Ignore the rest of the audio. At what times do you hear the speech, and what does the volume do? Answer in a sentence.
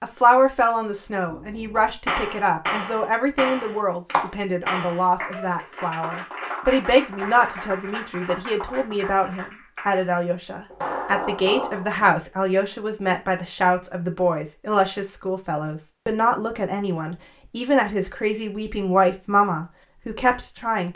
The speech can be heard from 0.0 to 20.9 s, at a steady volume.